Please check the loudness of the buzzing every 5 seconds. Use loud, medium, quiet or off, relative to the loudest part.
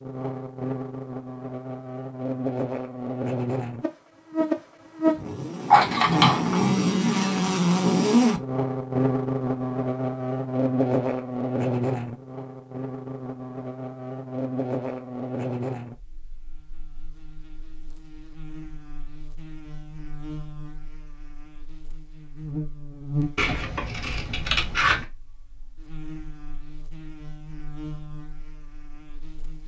medium, loud, medium, quiet, quiet, quiet.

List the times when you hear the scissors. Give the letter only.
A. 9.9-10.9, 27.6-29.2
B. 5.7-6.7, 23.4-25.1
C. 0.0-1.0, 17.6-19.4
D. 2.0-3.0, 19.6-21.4
B.